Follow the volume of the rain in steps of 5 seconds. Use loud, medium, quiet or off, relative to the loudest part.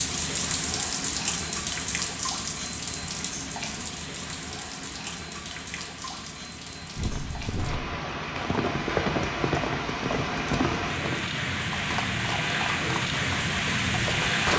loud, medium, loud.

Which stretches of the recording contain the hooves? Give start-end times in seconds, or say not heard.
7.0-14.3.